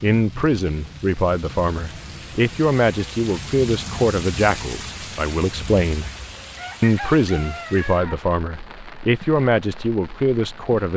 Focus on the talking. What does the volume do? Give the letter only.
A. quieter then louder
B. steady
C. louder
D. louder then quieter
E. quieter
B.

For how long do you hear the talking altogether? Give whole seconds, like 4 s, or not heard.
10 s.